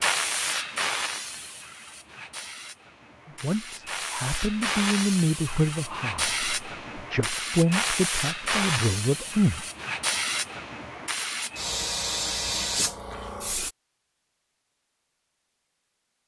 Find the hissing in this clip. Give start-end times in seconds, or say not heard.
0.0-13.8.